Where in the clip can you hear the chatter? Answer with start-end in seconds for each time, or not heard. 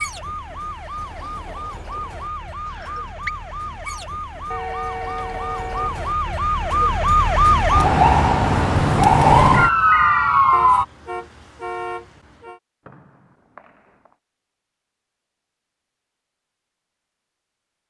not heard.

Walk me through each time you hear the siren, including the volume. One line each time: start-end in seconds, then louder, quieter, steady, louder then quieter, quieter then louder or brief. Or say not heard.
0.0-10.8 louder.